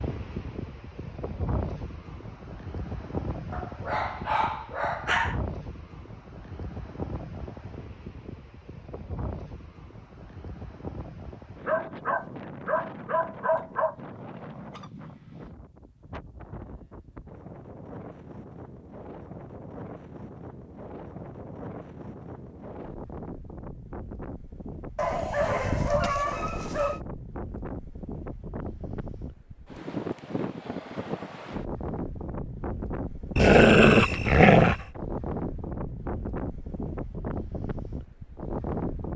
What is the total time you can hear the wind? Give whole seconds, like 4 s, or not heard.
39 s.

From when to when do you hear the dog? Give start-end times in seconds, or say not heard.
3.5-5.4, 11.7-13.9, 24.9-27.0, 33.4-34.8.